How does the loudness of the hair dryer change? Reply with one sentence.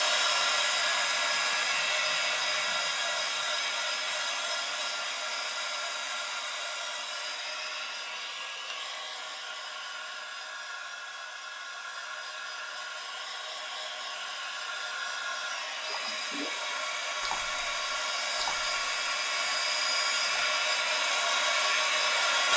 The loudness of the hair dryer goes down, then up.